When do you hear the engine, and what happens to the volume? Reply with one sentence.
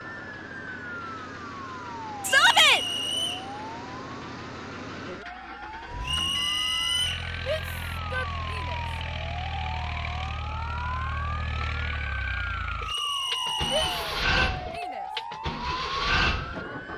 The engine can be heard from 0.0 to 16.9 s, getting louder.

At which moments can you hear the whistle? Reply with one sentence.
You can hear the whistle from 2.2 to 3.5 s, from 6.0 to 7.2 s and from 12.8 to 14.0 s.